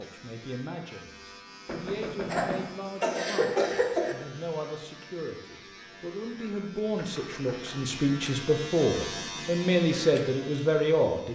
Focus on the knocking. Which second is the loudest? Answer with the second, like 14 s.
2 s.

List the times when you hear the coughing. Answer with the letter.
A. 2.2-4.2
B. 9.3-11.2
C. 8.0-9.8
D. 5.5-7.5
A.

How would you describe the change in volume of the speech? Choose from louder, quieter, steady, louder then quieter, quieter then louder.
louder.